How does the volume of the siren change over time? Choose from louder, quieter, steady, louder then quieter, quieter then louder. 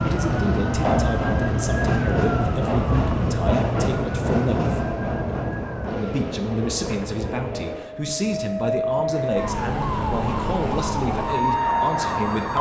quieter then louder.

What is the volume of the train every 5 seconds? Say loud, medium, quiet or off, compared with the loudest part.
loud, medium, medium.